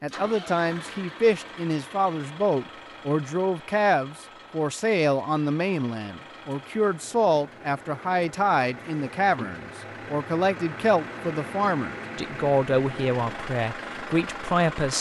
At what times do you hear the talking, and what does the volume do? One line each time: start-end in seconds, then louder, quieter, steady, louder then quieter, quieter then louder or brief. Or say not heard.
0.0-14.9 steady.